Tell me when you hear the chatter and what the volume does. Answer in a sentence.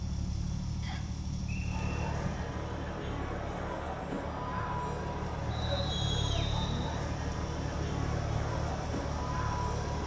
The chatter can be heard from 1.6 to 10.0 s, at a steady volume.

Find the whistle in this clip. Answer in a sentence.
You can hear the whistle from 0.8 to 2.0 s and from 5.5 to 7.0 s.